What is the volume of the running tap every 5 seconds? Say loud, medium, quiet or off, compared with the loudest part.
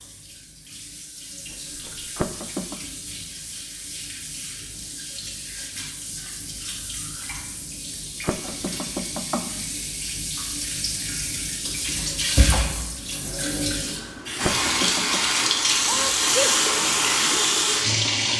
quiet, quiet, medium, loud.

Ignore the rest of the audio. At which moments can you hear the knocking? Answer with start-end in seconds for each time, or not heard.
2.1-2.8, 8.2-9.7, 14.4-15.2.